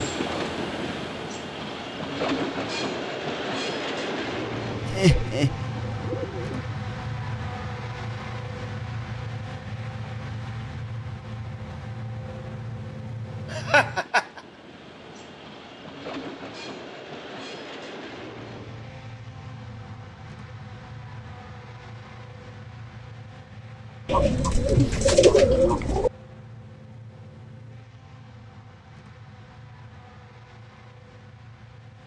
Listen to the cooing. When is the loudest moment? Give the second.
25 s.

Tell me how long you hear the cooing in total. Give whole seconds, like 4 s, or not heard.
4 s.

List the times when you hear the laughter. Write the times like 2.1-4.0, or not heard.
4.8-5.5, 13.5-14.4, 24.8-25.7.